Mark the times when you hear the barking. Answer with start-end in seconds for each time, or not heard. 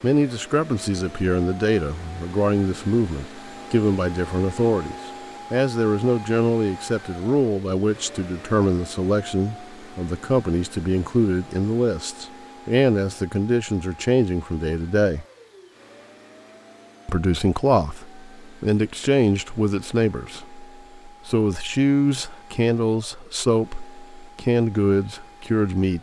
not heard.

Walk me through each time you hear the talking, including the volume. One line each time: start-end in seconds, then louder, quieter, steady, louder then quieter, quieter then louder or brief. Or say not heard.
0.0-15.2 steady
17.1-25.9 steady.